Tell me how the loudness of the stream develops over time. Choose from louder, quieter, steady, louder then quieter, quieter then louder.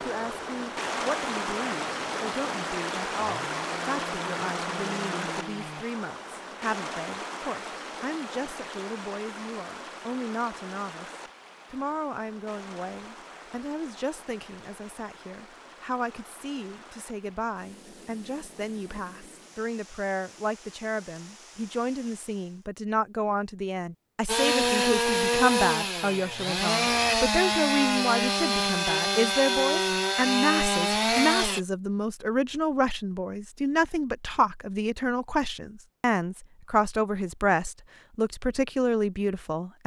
quieter.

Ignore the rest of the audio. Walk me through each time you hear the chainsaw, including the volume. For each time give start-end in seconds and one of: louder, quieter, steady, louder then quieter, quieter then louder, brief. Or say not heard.
0.0-5.8 louder
24.2-31.6 steady.